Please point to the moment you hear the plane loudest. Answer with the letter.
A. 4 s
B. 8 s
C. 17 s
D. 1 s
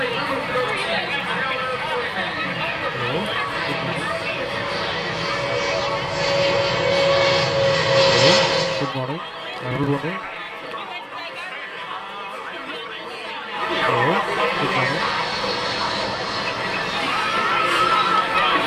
B.